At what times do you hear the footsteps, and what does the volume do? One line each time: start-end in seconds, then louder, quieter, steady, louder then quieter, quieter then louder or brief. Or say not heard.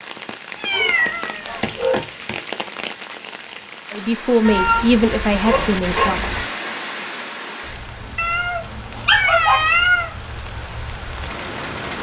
not heard.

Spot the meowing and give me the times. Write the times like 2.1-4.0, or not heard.
0.6-2.4, 4.5-6.5, 8.2-10.1.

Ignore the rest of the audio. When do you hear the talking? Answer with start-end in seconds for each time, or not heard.
3.9-6.2.